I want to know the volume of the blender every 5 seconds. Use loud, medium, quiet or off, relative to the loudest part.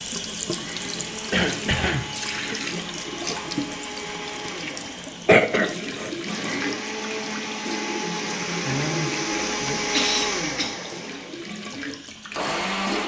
medium, loud, loud.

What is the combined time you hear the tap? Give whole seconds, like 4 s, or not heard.
13 s.